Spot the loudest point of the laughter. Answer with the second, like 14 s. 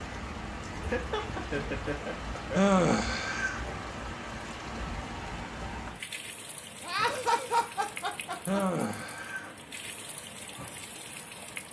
7 s.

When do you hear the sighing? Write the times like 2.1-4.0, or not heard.
2.5-3.6, 8.4-9.6.